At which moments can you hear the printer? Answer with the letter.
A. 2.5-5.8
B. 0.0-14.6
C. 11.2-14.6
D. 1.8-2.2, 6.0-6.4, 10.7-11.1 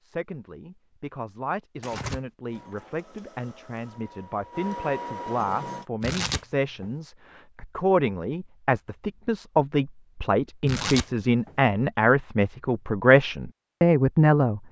A.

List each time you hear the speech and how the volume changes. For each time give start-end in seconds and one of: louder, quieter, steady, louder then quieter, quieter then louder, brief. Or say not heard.
0.0-14.6 louder.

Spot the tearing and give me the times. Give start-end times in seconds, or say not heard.
1.8-2.2, 6.0-6.4, 10.7-11.1.